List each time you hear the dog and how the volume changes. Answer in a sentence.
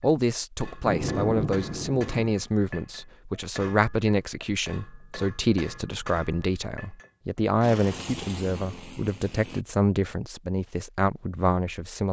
You can't hear the dog here.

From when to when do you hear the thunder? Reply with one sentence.
You can hear the thunder from 0.8 to 2.3 s.